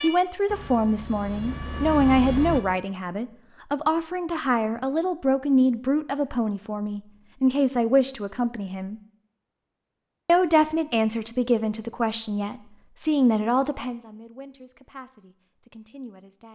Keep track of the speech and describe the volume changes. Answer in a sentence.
The volume of the speech goes down.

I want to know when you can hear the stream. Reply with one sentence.
You can't hear the stream here.